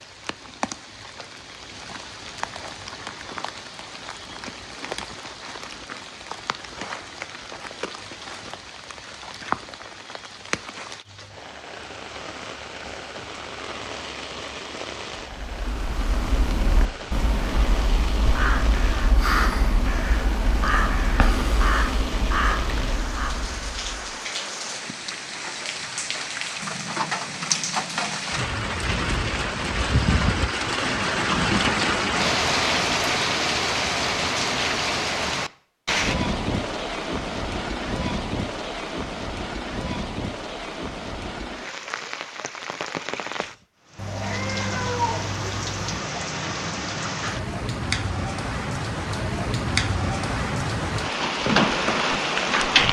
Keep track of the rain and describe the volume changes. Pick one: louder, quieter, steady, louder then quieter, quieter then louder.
louder.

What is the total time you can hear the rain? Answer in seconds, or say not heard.
53 s.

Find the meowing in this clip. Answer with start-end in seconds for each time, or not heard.
44.0-46.0.